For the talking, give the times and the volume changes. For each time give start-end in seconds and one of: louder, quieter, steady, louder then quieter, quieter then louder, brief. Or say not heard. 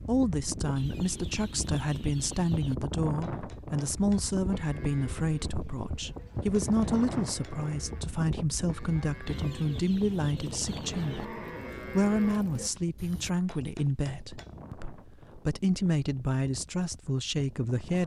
0.0-18.0 steady.